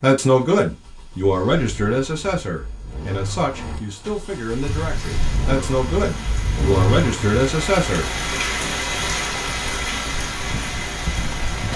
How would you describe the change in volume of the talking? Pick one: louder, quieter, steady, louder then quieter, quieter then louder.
quieter then louder.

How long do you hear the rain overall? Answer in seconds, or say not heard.
7 s.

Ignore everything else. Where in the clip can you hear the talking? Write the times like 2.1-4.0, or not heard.
0.0-8.1.